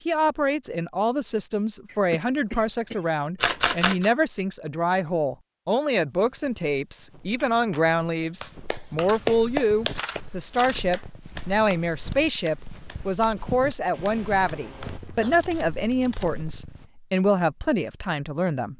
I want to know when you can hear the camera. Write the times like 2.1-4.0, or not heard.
3.4-4.1, 9.1-10.8, 14.9-16.4.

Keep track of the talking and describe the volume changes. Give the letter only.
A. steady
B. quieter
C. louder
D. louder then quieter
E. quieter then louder
A.